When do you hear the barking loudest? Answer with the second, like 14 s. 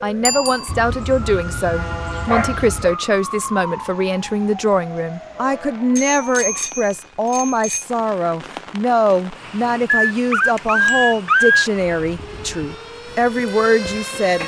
11 s.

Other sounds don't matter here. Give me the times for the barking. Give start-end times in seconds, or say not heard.
0.7-3.0, 10.1-11.7.